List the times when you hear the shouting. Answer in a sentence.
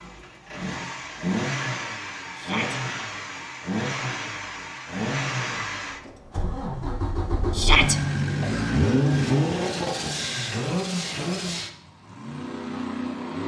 The shouting can be heard from 2.4 to 2.8 s and from 7.5 to 8.0 s.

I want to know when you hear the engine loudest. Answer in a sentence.
The volume of the engine peaks at 9 seconds.